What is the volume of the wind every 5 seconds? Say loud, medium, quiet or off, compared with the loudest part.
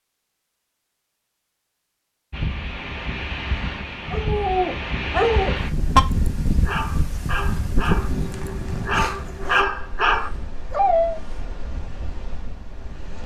loud, loud, quiet.